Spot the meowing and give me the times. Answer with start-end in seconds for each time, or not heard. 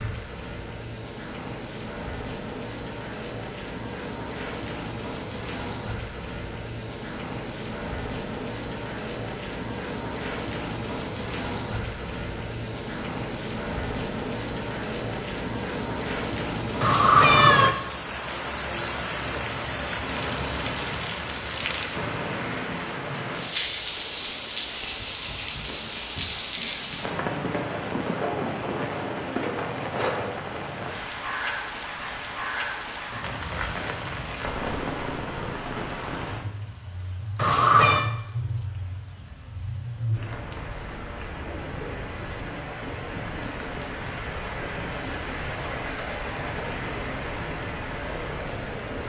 16.8-17.8, 37.4-38.1.